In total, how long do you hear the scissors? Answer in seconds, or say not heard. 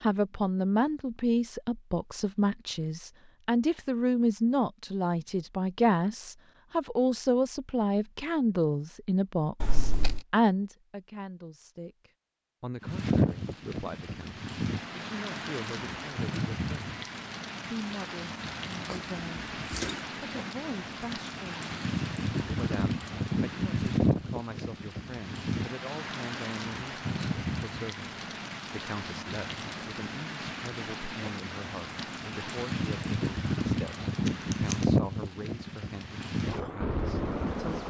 2 s.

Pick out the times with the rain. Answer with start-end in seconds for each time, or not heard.
12.8-37.8.